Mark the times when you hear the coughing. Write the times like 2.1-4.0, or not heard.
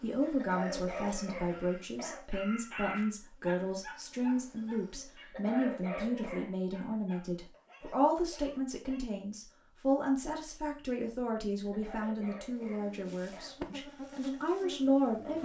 0.2-2.2, 5.2-6.5, 11.6-13.6.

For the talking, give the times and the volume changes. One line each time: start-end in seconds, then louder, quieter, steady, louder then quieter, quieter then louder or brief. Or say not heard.
0.0-15.4 steady.